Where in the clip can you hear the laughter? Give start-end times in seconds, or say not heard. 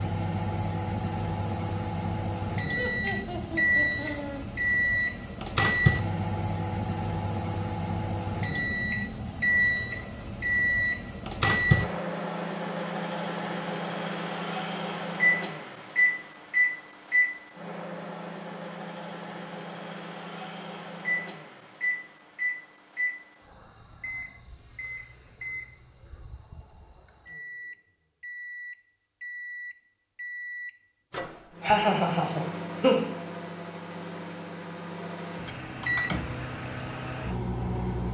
2.7-4.4, 31.6-33.0.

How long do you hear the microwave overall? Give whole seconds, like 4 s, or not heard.
38 s.